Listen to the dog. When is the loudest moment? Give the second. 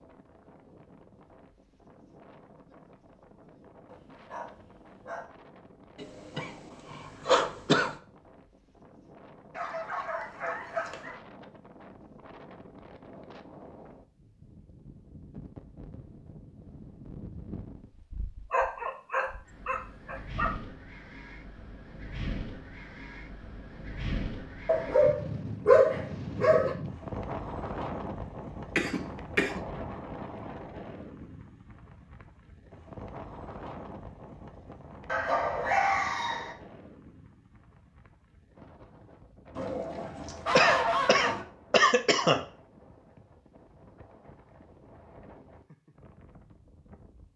26 s.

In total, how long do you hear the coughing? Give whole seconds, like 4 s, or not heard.
5 s.